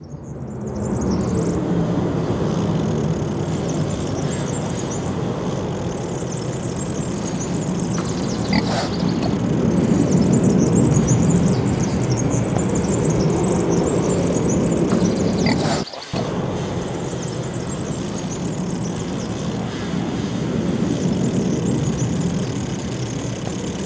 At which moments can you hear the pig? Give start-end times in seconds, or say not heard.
8.0-9.4, 14.9-16.3.